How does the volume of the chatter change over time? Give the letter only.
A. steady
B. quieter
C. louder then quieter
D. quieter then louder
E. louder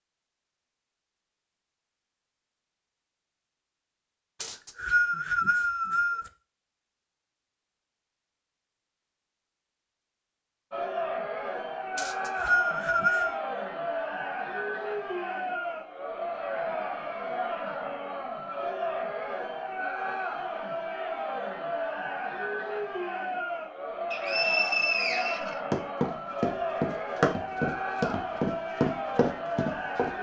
A.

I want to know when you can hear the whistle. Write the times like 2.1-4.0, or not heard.
4.4-6.3, 11.9-13.4, 24.1-25.6.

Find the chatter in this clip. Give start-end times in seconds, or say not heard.
10.7-30.1.